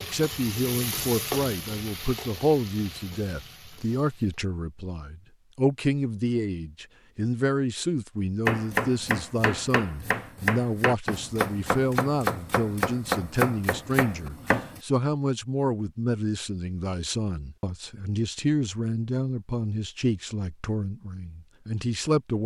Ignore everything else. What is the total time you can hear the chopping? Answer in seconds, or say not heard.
6 s.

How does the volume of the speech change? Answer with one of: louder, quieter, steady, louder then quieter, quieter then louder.
steady.